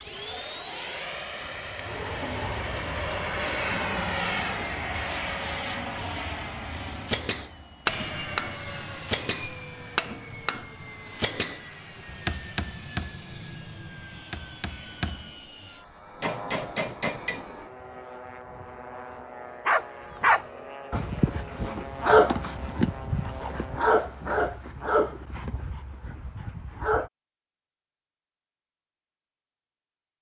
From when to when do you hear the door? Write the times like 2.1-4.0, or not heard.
1.9-2.8.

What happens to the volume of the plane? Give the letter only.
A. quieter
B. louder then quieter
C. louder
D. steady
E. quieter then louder
A.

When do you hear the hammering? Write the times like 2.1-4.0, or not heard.
7.0-17.4.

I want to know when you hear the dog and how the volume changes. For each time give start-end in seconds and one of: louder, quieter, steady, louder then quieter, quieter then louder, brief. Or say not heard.
19.6-27.1 quieter.